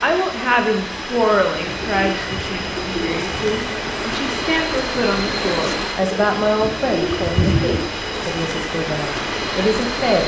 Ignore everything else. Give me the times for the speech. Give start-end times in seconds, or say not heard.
0.0-10.2.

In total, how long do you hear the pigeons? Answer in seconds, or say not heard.
4 s.